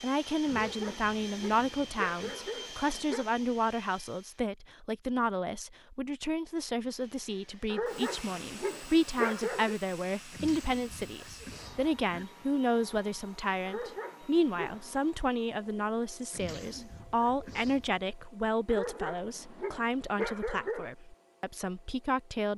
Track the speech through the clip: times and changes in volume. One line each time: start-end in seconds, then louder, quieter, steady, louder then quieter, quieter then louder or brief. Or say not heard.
0.0-22.5 steady.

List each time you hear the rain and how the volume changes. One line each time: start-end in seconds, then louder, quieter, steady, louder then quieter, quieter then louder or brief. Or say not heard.
not heard.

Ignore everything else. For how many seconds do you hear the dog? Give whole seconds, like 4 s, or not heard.
9 s.